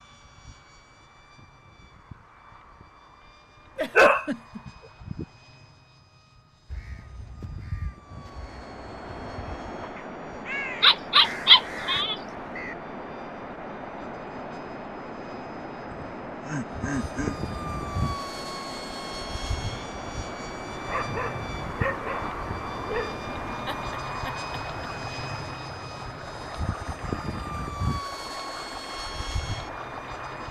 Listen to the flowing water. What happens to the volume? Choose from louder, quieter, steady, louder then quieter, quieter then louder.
steady.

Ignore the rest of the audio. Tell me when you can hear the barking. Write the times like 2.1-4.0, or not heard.
4.0-5.2, 10.8-12.7, 20.9-23.2.